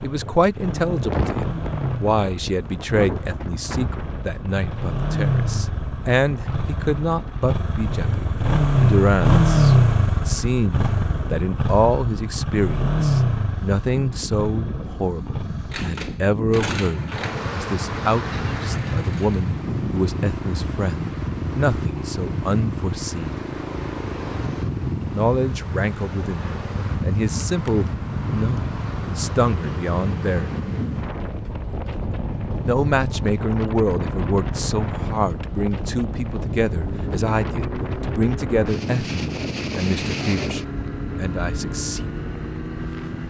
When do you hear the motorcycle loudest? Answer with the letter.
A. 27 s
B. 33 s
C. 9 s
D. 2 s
C.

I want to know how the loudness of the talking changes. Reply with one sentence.
The loudness of the talking stays about the same.